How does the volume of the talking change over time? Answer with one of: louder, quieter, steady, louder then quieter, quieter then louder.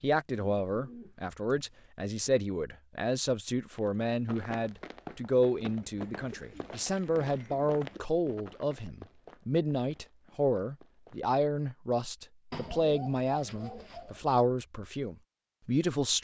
steady.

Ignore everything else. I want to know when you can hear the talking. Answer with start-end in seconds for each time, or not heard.
0.0-16.1.